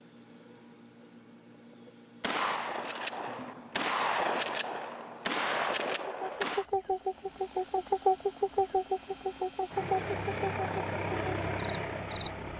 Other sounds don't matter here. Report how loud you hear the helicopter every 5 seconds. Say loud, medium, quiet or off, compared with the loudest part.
off, medium, loud.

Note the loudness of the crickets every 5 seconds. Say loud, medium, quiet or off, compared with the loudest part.
quiet, loud, medium.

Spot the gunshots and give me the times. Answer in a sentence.
The gunshots can be heard from 2.2 to 6.7 s.